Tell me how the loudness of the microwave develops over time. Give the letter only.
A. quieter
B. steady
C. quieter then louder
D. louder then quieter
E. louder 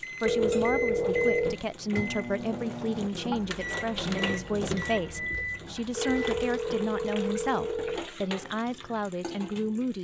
B.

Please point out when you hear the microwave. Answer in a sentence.
You can hear the microwave from 0.0 to 6.5 s.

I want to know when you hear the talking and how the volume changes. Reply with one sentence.
You can hear the talking from 0.0 to 9.9 s, at a steady volume.